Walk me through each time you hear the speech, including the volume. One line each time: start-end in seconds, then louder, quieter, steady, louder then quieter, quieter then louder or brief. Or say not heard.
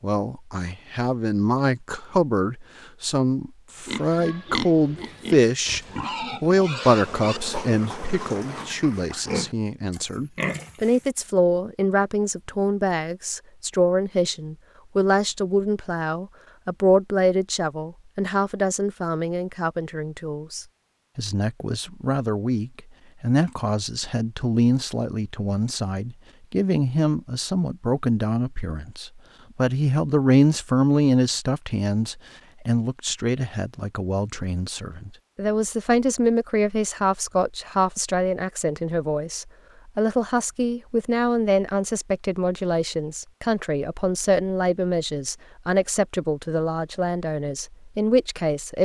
0.0-48.8 steady.